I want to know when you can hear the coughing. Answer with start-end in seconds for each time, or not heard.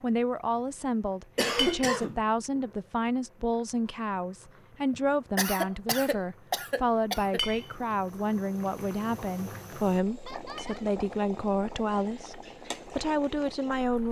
1.4-2.2, 4.9-7.4, 10.2-10.9.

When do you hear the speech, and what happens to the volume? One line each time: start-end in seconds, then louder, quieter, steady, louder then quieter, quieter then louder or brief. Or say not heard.
0.0-14.0 steady.